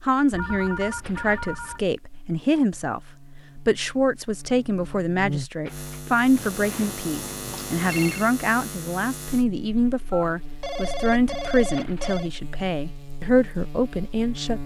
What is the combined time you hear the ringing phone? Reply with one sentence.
The ringing phone can be heard for 6 seconds in total.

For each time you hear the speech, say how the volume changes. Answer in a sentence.
You can hear the speech from 0.0 to 14.6 s, at a steady volume.